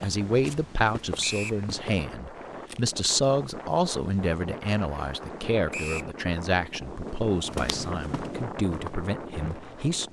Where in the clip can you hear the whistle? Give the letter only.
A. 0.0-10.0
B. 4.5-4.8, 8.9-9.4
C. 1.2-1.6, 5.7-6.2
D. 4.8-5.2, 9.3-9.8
C.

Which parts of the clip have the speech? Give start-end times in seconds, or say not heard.
0.0-10.0.